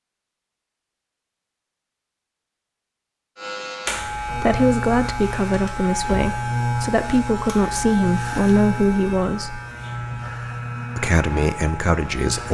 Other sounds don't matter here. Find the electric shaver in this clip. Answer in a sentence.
You can hear the electric shaver from 3.4 to 12.4 s.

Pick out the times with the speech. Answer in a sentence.
You can hear the speech from 4.0 to 9.6 s and from 10.9 to 12.4 s.